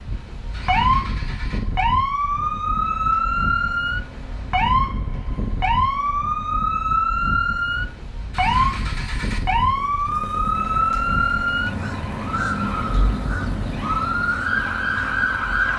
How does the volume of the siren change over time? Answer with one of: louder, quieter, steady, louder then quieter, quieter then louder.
steady.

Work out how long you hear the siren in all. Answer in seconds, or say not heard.
16 s.